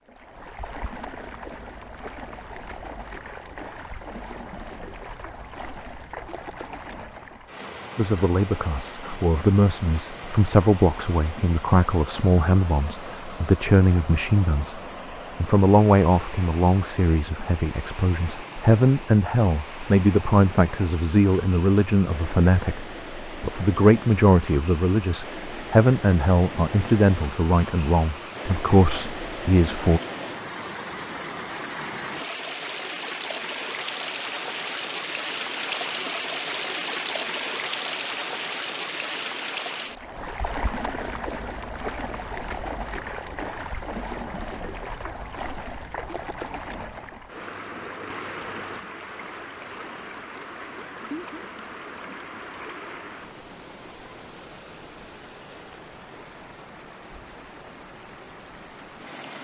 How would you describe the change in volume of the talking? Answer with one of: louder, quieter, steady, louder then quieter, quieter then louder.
steady.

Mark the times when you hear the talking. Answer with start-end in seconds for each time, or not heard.
8.0-14.8, 15.4-30.0.